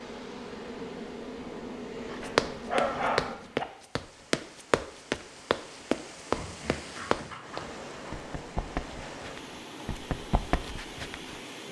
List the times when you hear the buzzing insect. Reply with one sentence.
You can hear the buzzing insect from 0.0 to 3.4 s.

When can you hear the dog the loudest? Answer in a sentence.
The loudest moment of the dog is at 3 seconds.